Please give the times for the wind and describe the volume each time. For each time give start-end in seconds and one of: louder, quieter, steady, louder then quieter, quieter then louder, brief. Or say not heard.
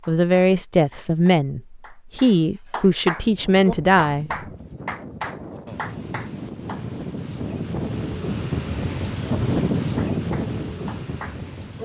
3.0-11.8 louder.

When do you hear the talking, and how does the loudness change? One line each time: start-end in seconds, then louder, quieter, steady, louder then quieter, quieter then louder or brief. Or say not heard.
0.1-4.3 steady.